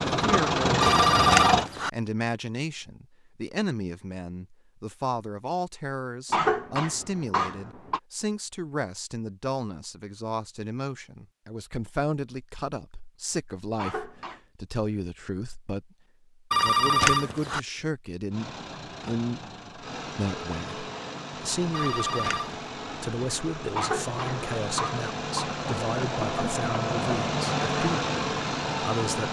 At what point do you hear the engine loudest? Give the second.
1 s.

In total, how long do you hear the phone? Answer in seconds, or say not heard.
3 s.